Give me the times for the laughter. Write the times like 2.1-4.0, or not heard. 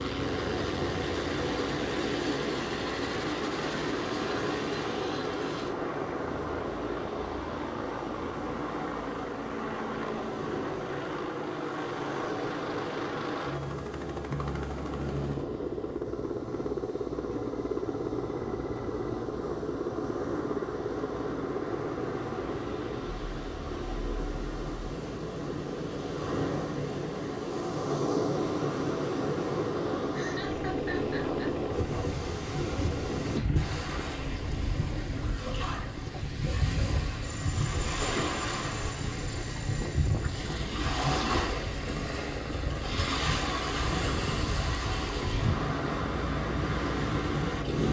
30.1-31.6.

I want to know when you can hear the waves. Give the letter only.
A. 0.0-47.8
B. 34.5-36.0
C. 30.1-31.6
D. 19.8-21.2
A.